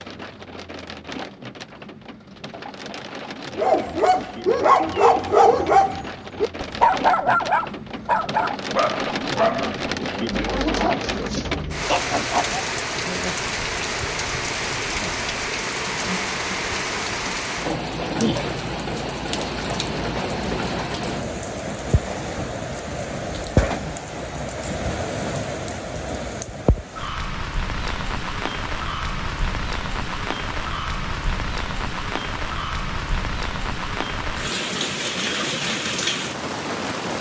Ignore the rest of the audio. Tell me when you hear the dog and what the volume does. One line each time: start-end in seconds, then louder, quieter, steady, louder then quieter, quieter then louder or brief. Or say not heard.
3.5-12.6 quieter.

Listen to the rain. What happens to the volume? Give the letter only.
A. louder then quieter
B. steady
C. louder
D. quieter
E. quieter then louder
C.